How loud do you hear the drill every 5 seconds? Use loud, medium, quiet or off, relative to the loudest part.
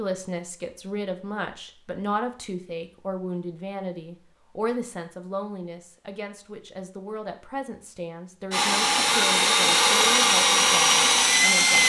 off, loud, loud.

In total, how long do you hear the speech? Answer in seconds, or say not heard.
12 s.